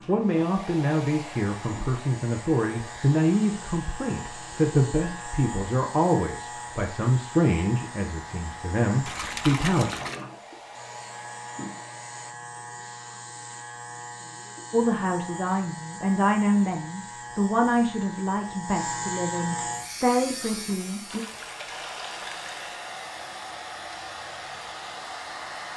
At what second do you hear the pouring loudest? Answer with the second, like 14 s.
10 s.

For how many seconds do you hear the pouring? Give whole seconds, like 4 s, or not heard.
3 s.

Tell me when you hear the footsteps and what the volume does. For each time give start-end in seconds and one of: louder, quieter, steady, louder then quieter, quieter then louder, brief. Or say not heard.
not heard.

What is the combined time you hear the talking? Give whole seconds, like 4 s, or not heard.
16 s.